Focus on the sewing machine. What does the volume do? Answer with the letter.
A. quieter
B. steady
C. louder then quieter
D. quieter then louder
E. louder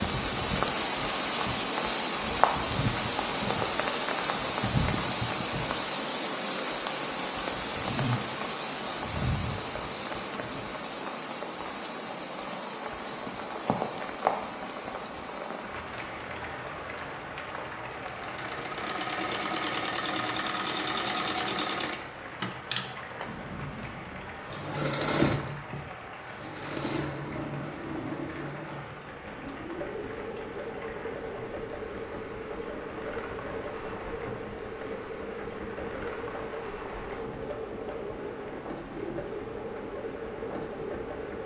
A.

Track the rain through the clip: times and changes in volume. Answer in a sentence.
The rain can be heard from 0.0 to 41.4 s, getting quieter.